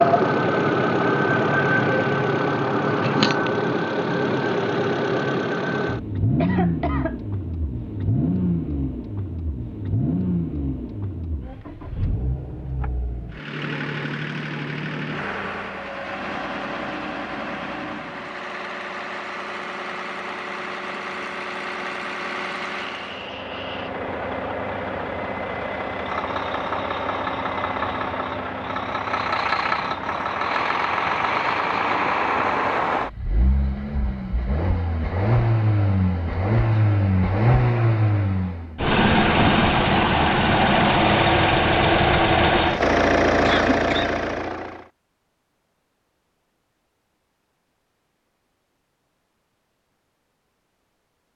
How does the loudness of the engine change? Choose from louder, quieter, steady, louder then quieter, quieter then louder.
quieter then louder.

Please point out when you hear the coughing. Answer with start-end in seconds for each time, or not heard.
6.3-7.2, 22.8-23.9, 43.4-44.1.